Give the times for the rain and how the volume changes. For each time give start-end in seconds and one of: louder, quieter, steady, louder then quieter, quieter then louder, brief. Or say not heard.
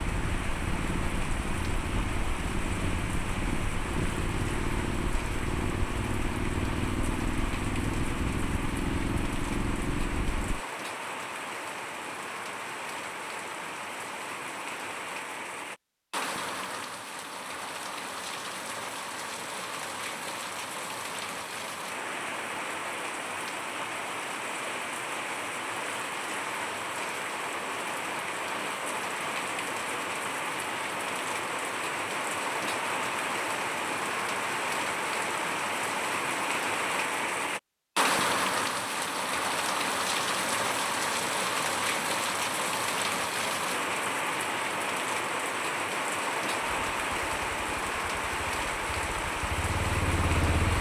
0.0-50.7 louder.